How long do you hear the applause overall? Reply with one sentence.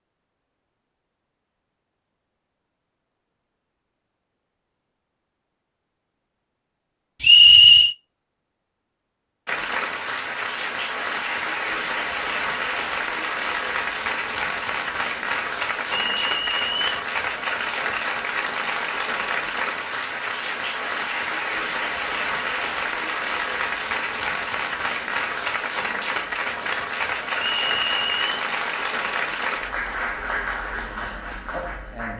The applause can be heard for 23 seconds in total.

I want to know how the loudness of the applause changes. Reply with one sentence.
The loudness of the applause stays about the same.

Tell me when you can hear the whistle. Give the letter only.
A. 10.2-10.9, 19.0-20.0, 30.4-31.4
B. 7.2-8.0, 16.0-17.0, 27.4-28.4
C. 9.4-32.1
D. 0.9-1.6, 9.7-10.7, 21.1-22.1
B.